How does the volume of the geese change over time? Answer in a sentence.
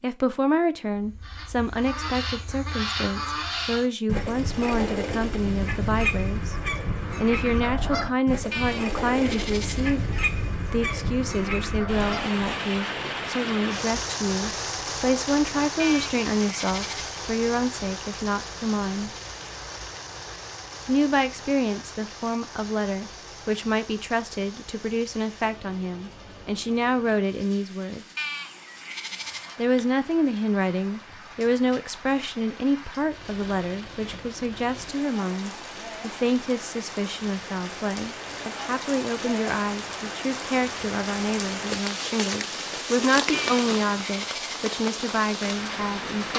The volume of the geese stays about the same.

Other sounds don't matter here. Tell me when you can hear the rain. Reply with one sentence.
The rain can be heard from 11.8 to 46.3 s.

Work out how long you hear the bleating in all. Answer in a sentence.
The bleating can be heard for 6 seconds in total.